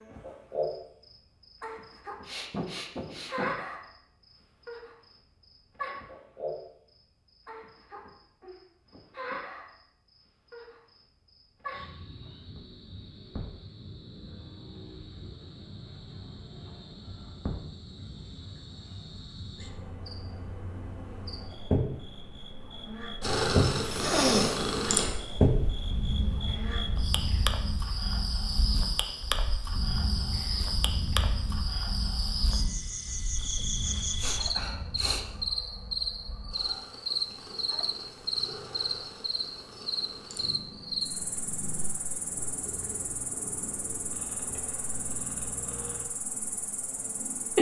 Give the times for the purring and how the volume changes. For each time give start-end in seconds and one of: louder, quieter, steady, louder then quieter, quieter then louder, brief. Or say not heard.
23.2-47.5 quieter.